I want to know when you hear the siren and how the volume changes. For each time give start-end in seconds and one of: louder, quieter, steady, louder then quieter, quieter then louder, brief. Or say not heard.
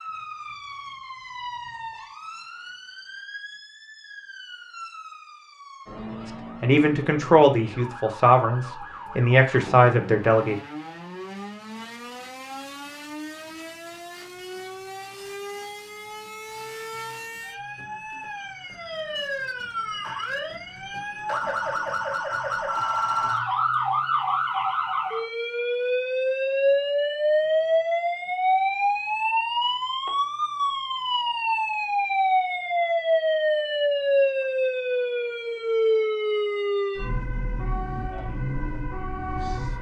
0.0-39.7 louder.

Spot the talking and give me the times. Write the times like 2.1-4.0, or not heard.
6.6-10.6.